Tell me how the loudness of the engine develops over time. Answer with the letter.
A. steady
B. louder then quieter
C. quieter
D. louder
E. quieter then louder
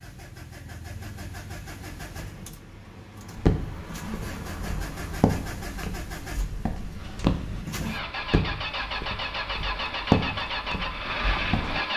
D.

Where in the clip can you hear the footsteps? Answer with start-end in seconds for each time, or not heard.
3.4-11.8.